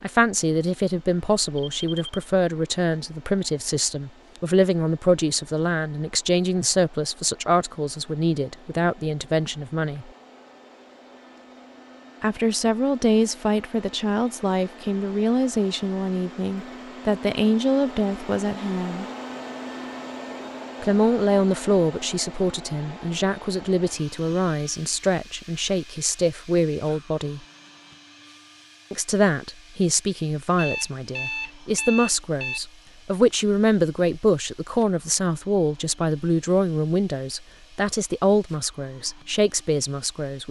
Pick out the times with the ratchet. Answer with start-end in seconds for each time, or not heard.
not heard.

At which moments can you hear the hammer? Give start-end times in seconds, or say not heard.
not heard.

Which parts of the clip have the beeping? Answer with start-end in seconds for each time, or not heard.
1.7-2.2, 30.6-32.6.